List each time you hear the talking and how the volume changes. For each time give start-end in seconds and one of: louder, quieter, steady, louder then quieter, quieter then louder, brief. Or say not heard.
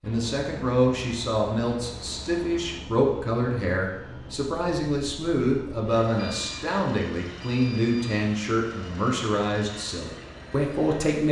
0.0-11.2 steady.